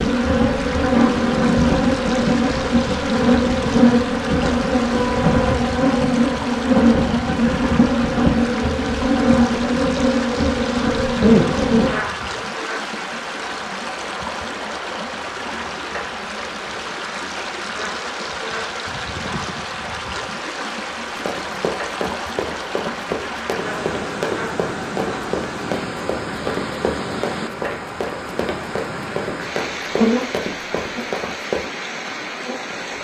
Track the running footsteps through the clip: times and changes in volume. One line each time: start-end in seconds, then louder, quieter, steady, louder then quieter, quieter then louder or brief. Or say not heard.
21.1-31.7 steady.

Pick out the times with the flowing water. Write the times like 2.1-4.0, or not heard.
0.0-32.9.